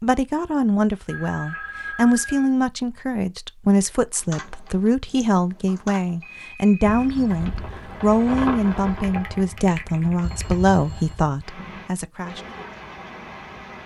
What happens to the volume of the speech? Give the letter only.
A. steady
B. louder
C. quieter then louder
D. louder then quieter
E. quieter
A.